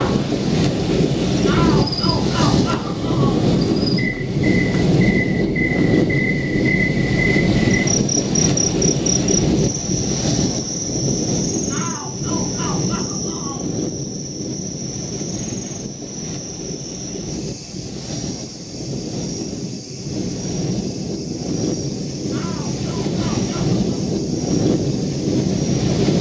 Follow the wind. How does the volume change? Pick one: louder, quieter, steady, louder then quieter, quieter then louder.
quieter then louder.